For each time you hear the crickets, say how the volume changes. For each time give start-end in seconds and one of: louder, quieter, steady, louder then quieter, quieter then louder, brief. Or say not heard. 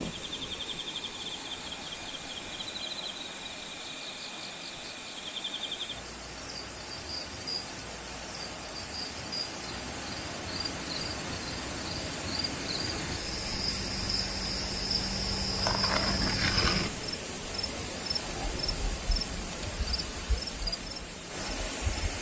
0.0-22.1 louder then quieter.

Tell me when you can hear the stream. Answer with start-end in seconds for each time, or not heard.
0.0-22.1.